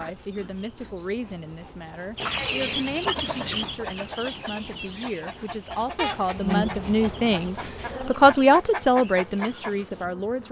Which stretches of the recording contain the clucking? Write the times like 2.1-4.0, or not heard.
2.1-10.1.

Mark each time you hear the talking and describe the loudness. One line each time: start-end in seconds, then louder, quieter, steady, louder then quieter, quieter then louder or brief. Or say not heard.
0.0-10.4 louder.